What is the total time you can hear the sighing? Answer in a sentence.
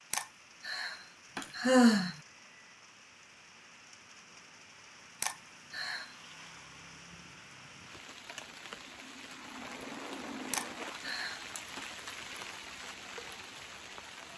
The sighing can be heard for 4 seconds in total.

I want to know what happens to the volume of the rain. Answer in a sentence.
The loudness of the rain goes up.